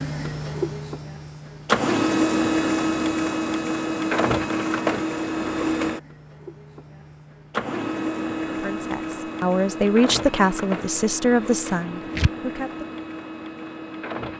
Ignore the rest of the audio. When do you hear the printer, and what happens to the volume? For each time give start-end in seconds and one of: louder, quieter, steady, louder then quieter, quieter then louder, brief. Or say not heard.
0.0-14.3 quieter.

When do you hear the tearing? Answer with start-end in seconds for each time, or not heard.
11.7-12.3.